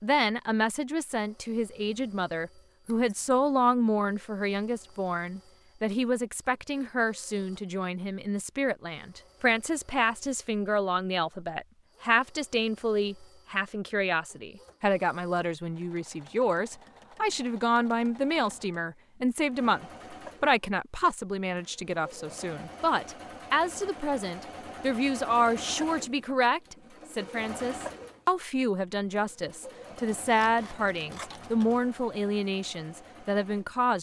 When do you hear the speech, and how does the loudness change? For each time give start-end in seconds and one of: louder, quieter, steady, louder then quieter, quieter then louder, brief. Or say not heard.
0.0-33.9 steady.